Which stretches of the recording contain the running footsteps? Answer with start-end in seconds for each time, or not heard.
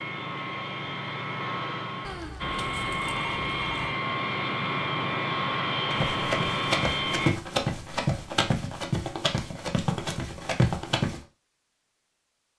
5.9-11.2.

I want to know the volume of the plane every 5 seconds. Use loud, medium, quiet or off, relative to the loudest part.
loud, loud, off.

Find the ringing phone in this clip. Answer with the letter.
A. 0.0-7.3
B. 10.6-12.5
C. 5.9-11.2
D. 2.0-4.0
D.